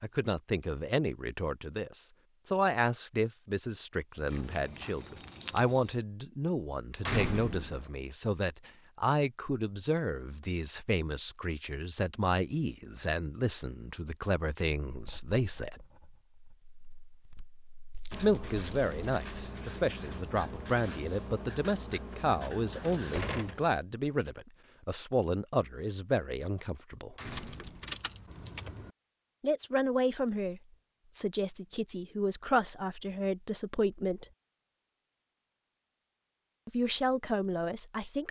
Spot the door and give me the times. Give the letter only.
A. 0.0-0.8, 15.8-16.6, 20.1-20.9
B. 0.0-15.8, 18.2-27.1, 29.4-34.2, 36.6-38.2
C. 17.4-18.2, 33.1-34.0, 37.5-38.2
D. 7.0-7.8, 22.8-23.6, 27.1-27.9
D.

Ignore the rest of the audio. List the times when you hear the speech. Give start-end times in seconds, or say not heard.
0.0-15.8, 18.2-27.1, 29.4-34.2, 36.6-38.2.